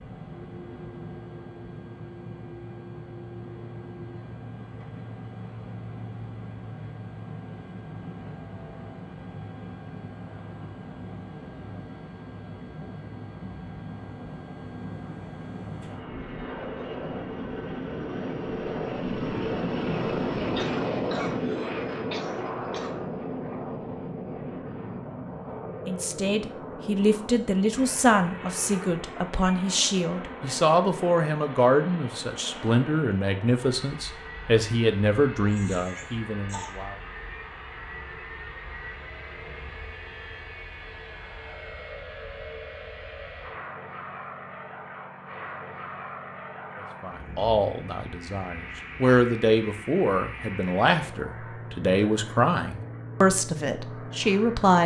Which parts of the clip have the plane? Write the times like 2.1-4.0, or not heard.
0.0-54.8.